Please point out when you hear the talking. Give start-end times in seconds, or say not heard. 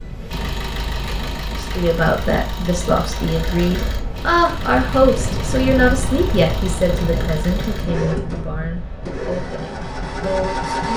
1.5-10.9.